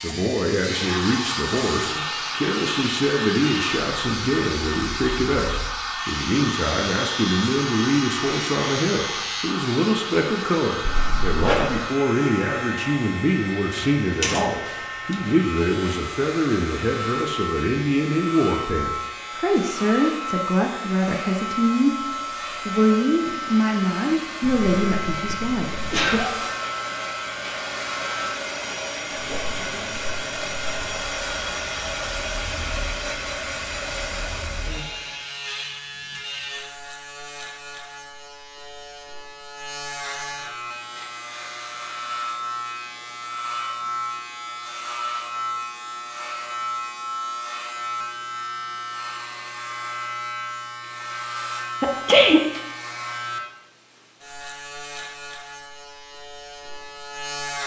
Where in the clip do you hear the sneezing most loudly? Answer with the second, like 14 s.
52 s.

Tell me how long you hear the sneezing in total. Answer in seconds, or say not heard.
3 s.